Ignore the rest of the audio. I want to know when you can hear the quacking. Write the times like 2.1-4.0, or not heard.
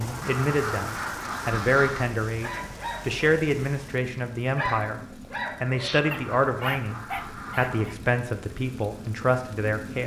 0.2-2.0, 5.8-7.8.